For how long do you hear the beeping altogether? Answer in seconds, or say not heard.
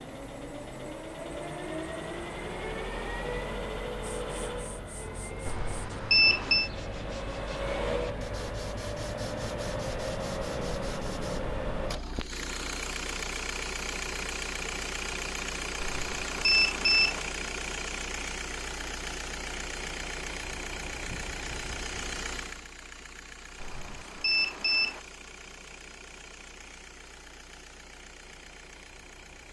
4 s.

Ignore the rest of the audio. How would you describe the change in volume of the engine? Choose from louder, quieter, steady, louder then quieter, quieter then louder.
quieter.